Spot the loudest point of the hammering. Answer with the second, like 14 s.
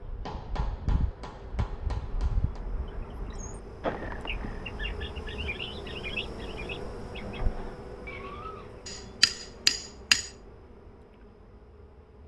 10 s.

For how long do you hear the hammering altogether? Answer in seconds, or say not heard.
4 s.